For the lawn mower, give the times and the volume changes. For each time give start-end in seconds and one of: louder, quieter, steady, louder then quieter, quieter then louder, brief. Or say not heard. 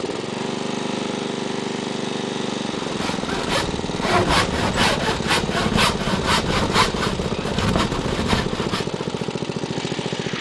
0.0-10.3 steady.